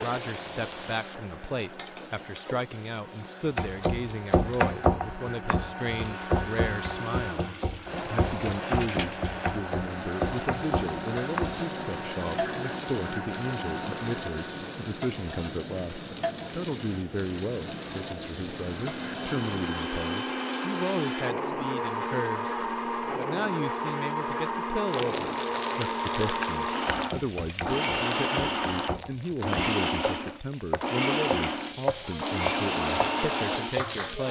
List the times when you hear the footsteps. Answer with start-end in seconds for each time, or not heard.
not heard.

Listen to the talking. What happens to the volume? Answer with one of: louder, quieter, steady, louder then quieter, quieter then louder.
steady.